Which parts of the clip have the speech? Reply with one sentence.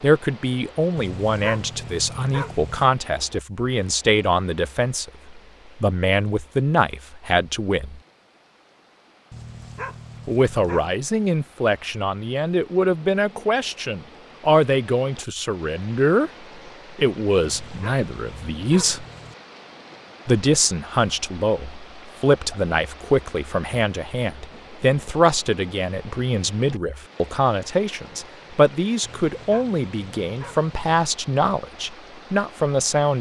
You can hear the speech from 0.0 to 8.0 s, from 10.2 to 16.3 s, from 16.9 to 19.1 s and from 20.2 to 33.1 s.